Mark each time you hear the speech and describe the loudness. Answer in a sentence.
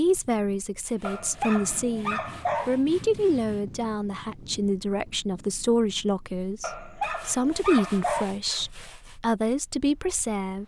You can hear the speech from 0.0 to 10.6 s, at a steady volume.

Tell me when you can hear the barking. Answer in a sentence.
The barking can be heard from 1.0 to 2.8 s and from 6.6 to 8.3 s.